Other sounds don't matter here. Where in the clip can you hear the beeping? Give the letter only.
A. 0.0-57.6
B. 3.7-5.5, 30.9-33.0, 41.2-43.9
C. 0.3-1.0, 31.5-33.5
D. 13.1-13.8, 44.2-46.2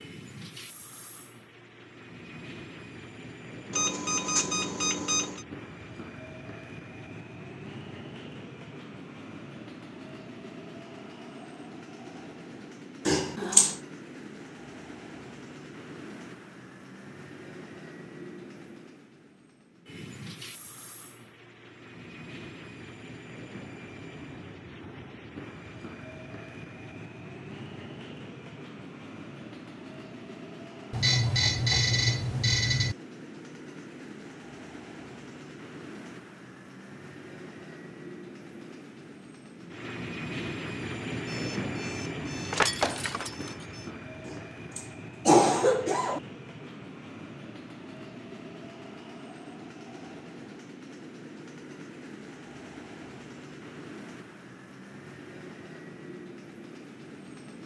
B.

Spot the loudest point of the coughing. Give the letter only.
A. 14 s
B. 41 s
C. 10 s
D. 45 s
D.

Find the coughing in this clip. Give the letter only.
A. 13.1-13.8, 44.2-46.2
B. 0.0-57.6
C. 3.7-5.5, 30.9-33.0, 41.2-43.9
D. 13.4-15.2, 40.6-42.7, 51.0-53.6
A.